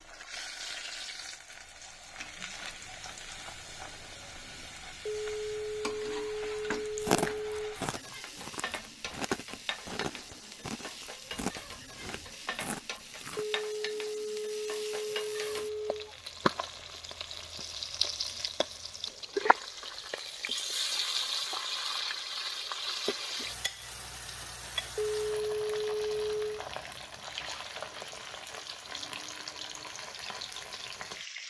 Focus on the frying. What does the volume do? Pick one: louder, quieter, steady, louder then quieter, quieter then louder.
louder then quieter.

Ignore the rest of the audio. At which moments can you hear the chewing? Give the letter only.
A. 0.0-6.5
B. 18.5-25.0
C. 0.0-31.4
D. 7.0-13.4
D.